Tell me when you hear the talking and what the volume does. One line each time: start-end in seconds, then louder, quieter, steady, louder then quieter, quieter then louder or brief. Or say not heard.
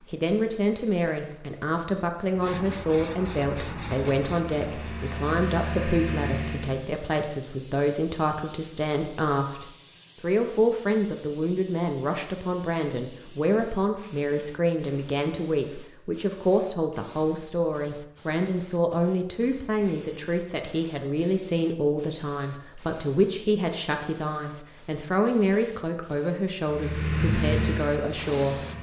0.1-28.6 steady.